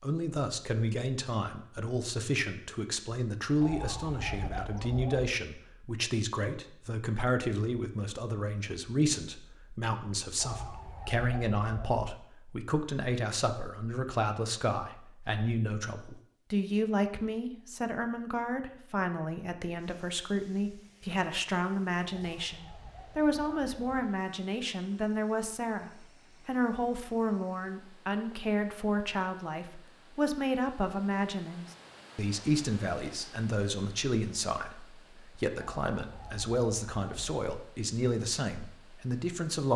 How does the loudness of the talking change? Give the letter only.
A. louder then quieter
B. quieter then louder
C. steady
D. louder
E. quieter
C.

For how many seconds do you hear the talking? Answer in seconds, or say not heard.
40 s.